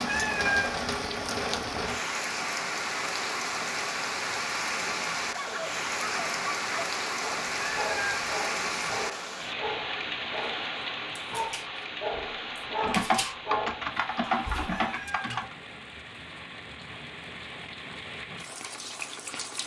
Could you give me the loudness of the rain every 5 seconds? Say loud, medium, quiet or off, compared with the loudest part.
loud, loud, medium, medium.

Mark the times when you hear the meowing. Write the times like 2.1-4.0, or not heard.
0.1-0.8, 7.5-8.2, 14.7-15.4.